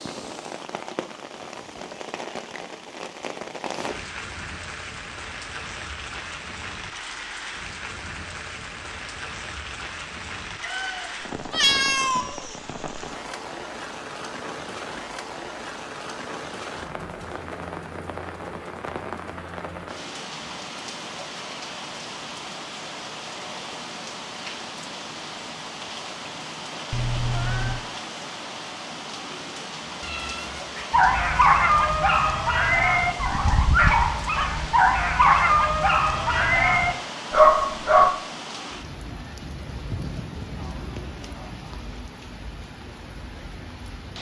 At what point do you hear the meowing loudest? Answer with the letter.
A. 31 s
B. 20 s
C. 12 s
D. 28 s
C.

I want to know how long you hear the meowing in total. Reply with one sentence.
You can hear the meowing for 4 seconds altogether.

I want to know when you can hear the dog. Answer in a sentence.
The dog can be heard from 30.9 to 38.1 s.